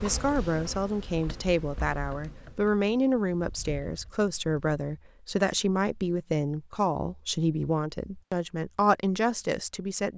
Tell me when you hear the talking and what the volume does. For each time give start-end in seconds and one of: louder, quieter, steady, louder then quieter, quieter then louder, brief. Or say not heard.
0.0-10.1 steady.